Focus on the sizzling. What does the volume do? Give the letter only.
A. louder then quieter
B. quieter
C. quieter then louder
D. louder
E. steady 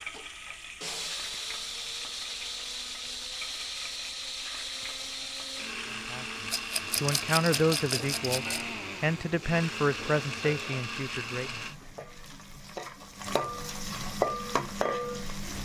D.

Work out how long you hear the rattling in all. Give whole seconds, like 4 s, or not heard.
2 s.